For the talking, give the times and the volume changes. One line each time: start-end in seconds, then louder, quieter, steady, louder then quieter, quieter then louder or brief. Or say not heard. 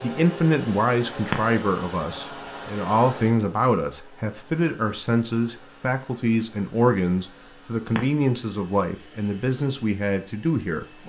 0.0-11.0 steady.